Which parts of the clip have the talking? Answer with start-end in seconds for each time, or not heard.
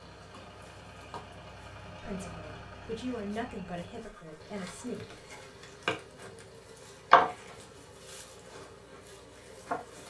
2.0-5.2.